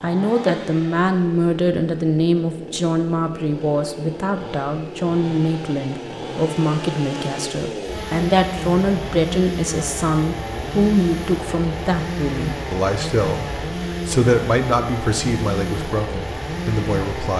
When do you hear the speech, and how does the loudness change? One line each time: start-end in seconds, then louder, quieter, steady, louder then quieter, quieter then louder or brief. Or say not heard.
0.0-17.3 steady.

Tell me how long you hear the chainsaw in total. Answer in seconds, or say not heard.
17 s.